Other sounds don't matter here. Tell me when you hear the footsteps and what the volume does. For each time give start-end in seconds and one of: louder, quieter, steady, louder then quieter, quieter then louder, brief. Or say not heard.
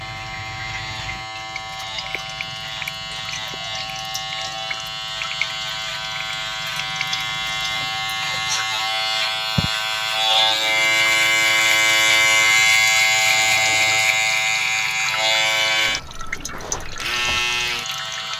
not heard.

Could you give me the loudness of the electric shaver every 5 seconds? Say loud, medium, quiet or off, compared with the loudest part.
quiet, medium, loud, medium.